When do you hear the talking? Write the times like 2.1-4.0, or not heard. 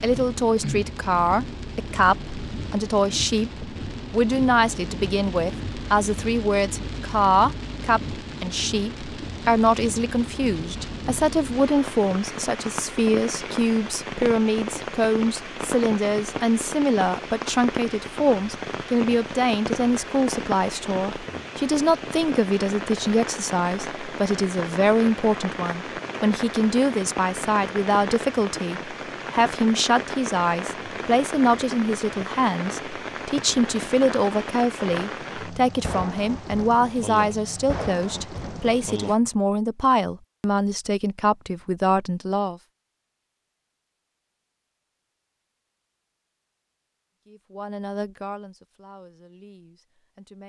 0.0-42.5, 47.2-50.4.